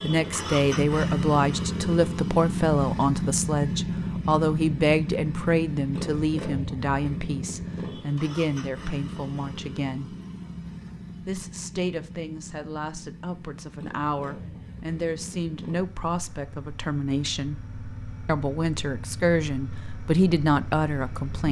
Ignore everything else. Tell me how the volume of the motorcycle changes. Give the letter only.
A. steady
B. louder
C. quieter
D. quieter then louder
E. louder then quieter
C.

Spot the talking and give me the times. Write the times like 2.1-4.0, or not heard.
0.0-10.2, 11.2-17.6, 18.2-21.4.